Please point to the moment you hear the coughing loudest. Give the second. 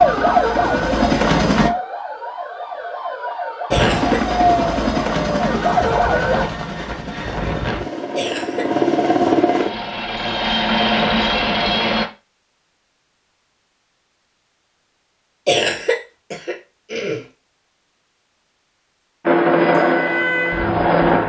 16 s.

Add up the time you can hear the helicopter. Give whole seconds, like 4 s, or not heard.
12 s.